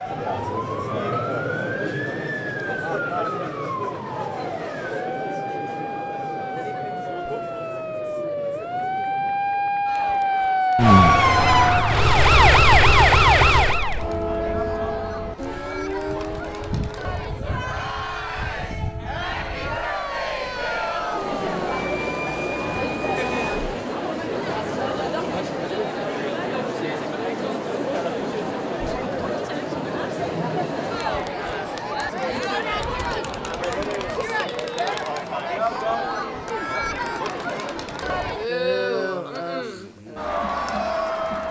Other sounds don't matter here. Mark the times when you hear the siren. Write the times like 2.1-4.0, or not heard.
0.0-23.8.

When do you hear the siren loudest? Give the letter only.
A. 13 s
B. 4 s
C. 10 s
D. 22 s
A.